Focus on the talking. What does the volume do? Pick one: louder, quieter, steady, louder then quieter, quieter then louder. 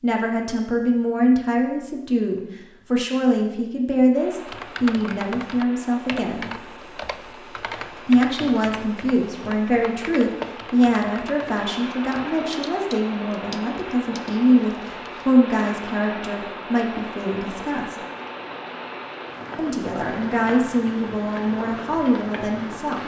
steady.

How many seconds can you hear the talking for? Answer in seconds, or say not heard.
20 s.